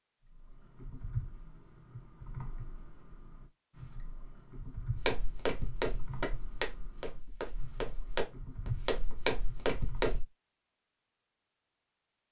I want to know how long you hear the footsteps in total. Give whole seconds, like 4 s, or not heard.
5 s.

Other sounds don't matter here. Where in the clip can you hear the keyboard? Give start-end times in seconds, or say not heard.
0.2-10.2.